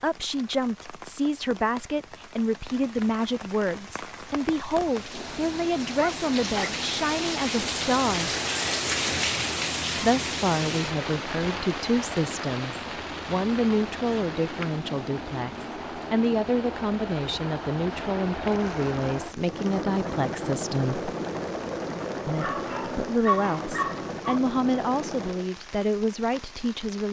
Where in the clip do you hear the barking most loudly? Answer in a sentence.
The loudest moment of the barking is at 23 seconds.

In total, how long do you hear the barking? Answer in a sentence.
You can hear the barking for 4 seconds altogether.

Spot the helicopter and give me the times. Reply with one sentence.
You can hear the helicopter from 5.0 to 25.6 s.